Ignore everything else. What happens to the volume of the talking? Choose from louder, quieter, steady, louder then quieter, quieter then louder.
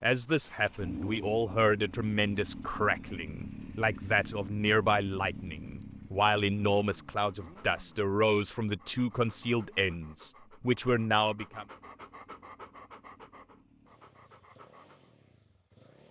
steady.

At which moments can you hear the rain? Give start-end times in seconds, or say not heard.
not heard.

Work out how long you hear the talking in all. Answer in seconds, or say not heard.
12 s.